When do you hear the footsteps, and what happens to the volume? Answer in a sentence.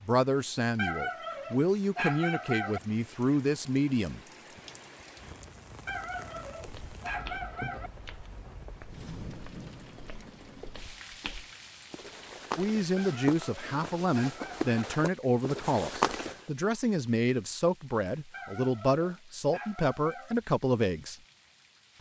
The footsteps can be heard from 6.5 to 16.4 s, getting quieter then louder.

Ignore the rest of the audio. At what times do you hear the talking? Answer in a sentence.
You can hear the talking from 0.0 to 4.2 s and from 12.6 to 21.1 s.